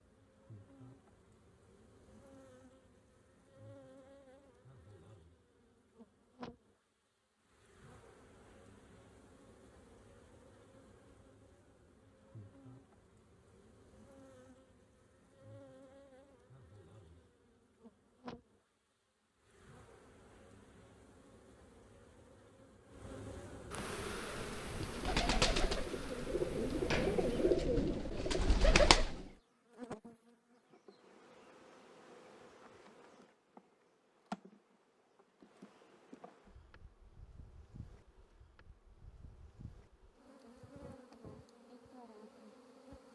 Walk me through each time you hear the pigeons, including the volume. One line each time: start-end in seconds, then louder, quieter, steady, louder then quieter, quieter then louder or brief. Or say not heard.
23.9-29.2 louder.